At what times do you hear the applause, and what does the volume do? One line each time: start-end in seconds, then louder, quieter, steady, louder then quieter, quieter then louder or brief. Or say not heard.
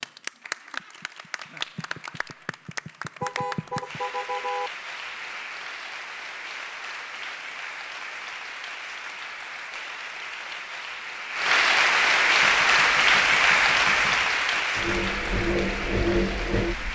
0.0-16.9 louder.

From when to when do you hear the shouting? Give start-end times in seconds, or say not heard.
not heard.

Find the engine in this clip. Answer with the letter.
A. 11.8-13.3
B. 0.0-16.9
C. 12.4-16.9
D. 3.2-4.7
C.